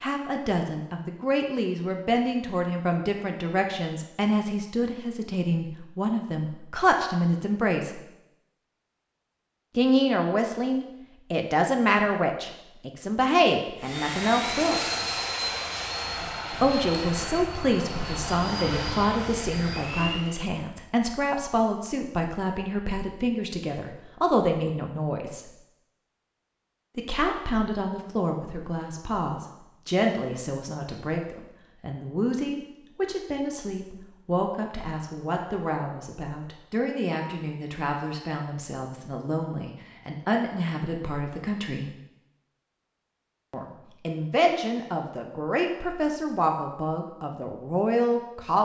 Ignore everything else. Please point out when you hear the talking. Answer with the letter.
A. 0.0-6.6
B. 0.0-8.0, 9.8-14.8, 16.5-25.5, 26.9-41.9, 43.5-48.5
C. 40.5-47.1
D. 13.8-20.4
B.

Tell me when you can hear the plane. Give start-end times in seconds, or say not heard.
13.8-20.4.